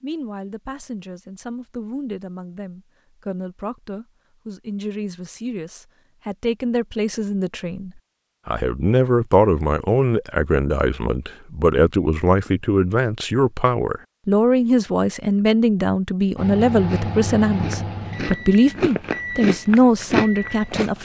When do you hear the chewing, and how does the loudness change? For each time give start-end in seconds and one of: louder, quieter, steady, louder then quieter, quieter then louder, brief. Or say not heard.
16.9-20.9 louder.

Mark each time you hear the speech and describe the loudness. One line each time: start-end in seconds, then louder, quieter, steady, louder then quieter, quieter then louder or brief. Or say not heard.
0.0-20.9 louder.